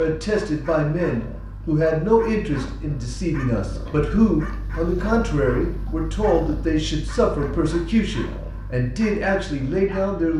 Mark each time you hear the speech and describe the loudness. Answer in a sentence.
The speech can be heard from 0.0 to 10.3 s, at a steady volume.